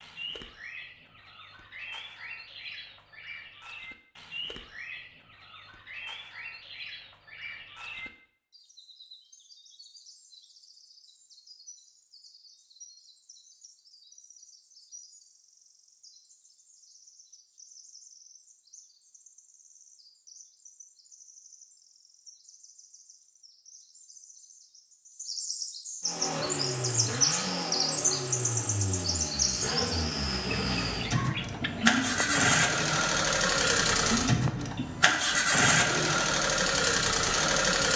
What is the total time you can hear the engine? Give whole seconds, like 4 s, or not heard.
12 s.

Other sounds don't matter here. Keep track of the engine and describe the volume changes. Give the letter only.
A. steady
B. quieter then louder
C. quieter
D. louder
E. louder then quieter
D.